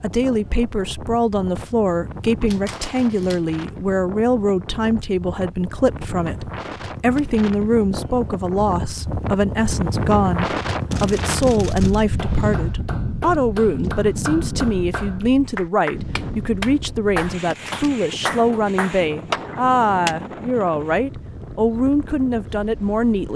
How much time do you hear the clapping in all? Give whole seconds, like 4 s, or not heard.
8 s.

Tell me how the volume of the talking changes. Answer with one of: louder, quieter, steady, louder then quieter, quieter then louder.
steady.